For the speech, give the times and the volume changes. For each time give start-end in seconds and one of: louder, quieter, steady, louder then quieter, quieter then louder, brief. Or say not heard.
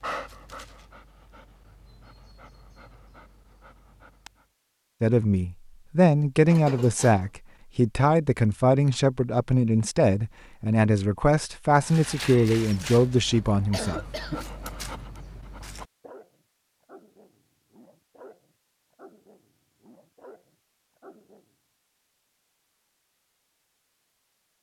5.0-14.3 steady.